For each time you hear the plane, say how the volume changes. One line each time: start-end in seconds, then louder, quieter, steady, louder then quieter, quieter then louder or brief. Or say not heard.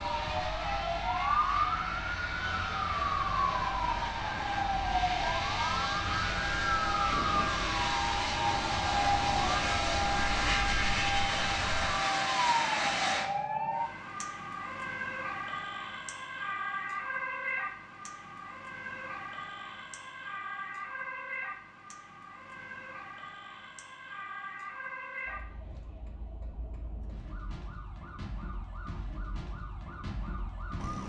0.0-13.3 louder.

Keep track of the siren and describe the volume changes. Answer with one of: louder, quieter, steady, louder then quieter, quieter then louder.
quieter.